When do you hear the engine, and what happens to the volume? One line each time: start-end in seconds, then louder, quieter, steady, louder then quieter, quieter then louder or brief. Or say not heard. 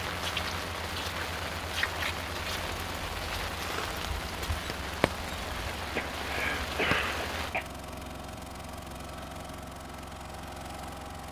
0.0-11.2 steady.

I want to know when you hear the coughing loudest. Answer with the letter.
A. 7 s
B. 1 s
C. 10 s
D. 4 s
A.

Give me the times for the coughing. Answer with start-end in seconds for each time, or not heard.
3.5-4.0, 5.8-7.7.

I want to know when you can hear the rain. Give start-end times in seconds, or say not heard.
0.0-7.5.